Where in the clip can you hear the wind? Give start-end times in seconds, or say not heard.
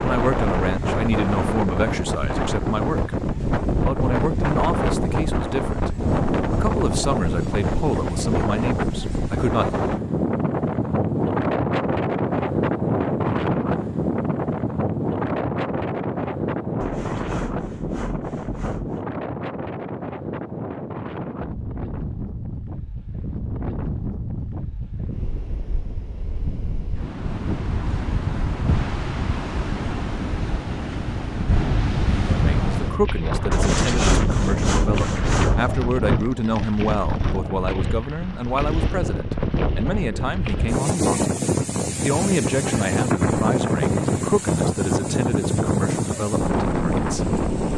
0.0-47.7.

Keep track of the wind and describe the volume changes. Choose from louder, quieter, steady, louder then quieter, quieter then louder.
quieter then louder.